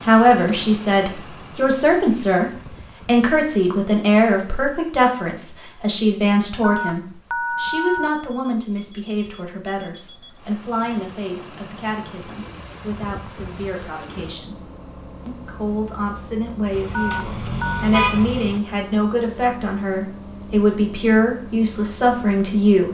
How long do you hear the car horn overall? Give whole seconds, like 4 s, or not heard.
2 s.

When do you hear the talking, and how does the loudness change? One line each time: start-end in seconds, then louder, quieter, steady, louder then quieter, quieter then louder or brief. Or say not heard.
0.0-14.6 quieter
15.2-22.8 louder.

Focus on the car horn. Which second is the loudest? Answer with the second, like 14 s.
18 s.